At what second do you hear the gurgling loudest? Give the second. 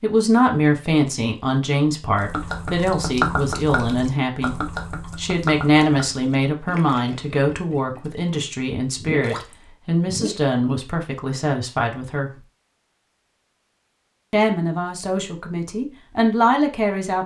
3 s.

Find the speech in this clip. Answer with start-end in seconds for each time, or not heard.
0.0-4.5, 5.2-12.3, 14.3-17.2.